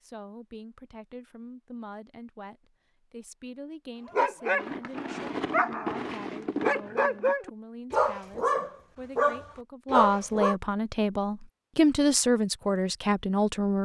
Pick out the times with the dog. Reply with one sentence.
The dog can be heard from 4.0 to 10.6 s.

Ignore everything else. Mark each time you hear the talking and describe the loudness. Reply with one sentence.
The talking can be heard from 0.0 to 13.8 s, getting louder.